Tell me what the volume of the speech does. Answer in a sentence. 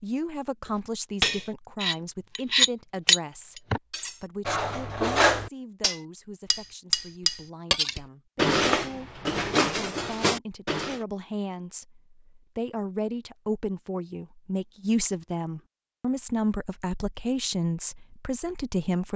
The volume of the speech goes down, then up.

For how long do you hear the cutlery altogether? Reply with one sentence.
You can hear the cutlery for 10 seconds altogether.